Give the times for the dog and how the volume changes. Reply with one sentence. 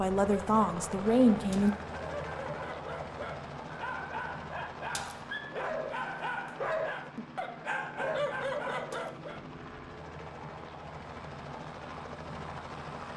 The dog can be heard from 0.2 to 9.4 s, getting louder.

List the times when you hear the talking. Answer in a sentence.
The talking can be heard from 0.0 to 1.8 s.